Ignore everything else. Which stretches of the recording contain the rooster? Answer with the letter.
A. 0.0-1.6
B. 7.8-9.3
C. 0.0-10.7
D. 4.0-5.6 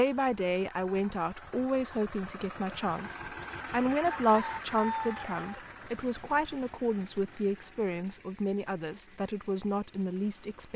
D.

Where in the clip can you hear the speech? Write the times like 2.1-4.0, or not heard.
0.0-10.7.